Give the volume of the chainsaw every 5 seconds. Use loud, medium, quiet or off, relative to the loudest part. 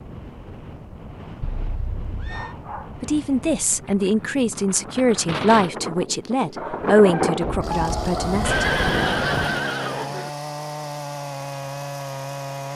off, loud, loud.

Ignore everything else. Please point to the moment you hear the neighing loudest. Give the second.
9 s.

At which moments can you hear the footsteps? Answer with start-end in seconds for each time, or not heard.
not heard.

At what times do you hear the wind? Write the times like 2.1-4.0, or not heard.
0.0-9.7.